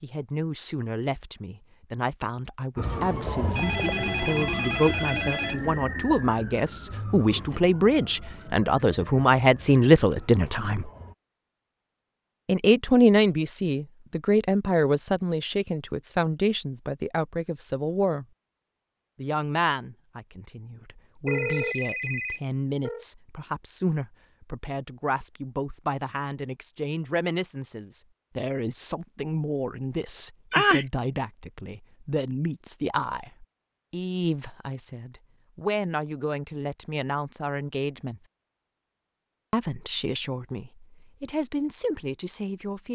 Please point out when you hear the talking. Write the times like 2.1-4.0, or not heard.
0.0-10.9, 12.4-18.2, 19.1-38.2, 39.5-42.8.